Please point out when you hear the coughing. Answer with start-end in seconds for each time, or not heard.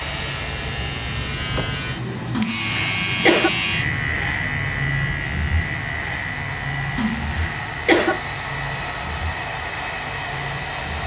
2.3-3.5, 7.0-8.2.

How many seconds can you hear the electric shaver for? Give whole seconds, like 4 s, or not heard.
11 s.